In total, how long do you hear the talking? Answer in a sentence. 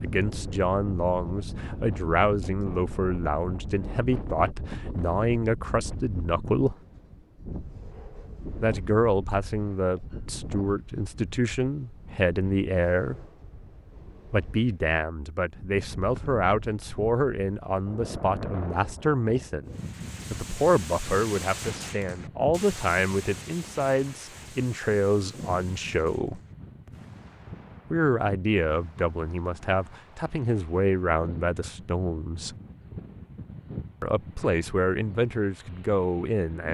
You can hear the talking for 30 seconds altogether.